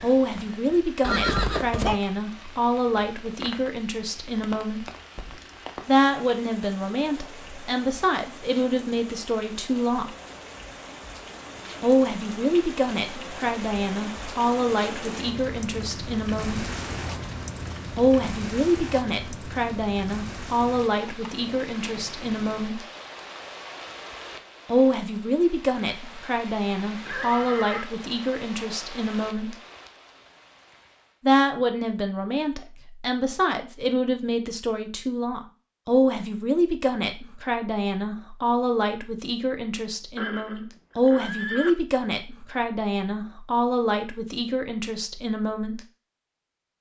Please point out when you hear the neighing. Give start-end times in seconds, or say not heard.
1.0-2.0, 27.1-27.9, 40.1-41.8.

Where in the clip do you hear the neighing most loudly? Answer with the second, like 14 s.
1 s.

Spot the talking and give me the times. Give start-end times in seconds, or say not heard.
0.0-4.8, 5.8-10.2, 11.8-16.7, 17.9-22.9, 24.6-29.6, 31.2-45.8.